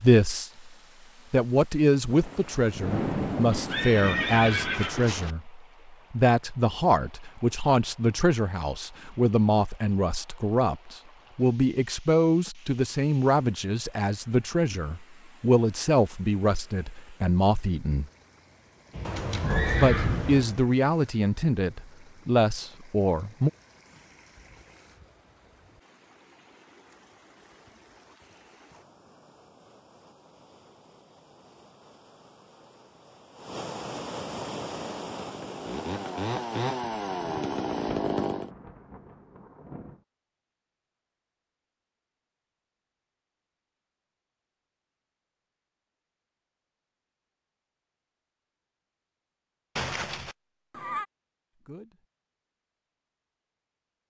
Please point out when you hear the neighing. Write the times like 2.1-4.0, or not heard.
3.5-5.3, 19.1-20.6, 49.8-51.0.